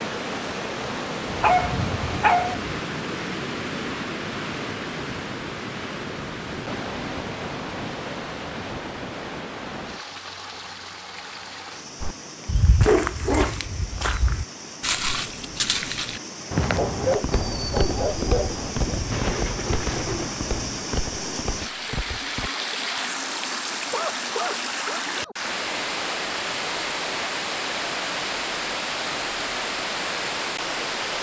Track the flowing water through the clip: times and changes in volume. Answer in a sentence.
You can hear the flowing water from 0.0 to 31.1 s, getting quieter then louder.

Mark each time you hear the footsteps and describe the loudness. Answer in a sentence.
The footsteps can be heard from 12.0 to 22.5 s, getting quieter.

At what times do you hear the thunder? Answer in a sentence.
You can hear the thunder from 1.5 to 2.6 s and from 17.3 to 20.8 s.